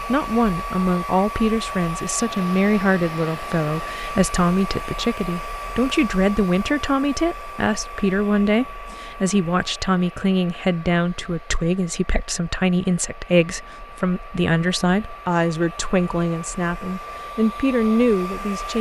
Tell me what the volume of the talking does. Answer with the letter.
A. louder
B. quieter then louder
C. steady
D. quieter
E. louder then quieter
C.